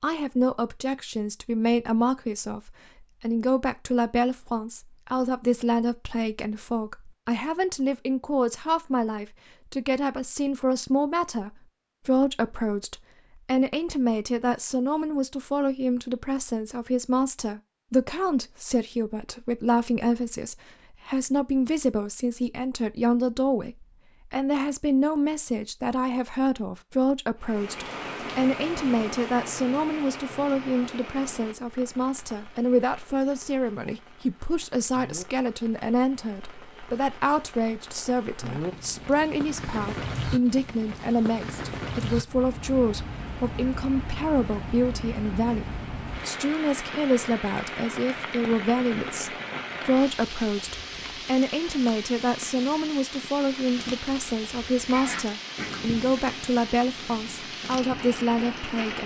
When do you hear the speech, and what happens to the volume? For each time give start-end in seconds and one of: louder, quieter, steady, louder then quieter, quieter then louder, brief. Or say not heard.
0.0-59.0 steady.